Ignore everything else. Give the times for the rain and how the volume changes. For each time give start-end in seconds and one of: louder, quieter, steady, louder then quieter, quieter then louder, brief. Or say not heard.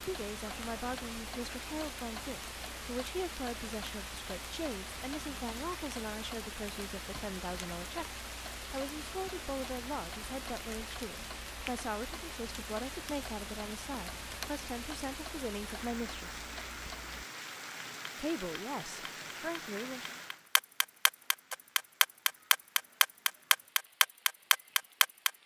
0.0-25.4 quieter.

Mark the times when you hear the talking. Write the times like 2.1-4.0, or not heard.
0.0-16.4, 18.1-20.1.